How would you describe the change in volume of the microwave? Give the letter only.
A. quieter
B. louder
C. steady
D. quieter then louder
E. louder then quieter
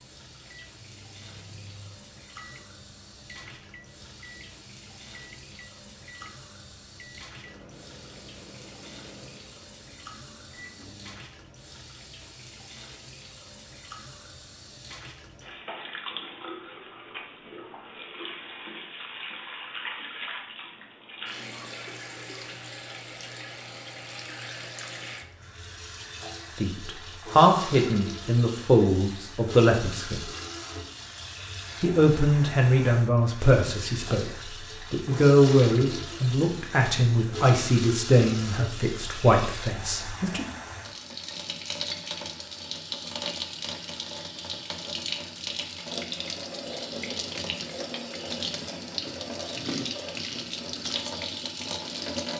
C.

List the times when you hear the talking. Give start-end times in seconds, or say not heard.
26.6-30.2, 31.8-34.2, 34.9-40.5.